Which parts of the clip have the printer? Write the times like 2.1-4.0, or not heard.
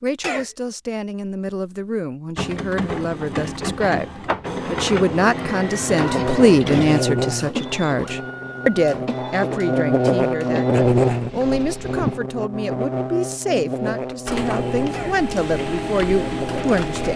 2.4-12.2, 14.2-17.1.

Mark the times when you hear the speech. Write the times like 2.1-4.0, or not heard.
0.0-17.1.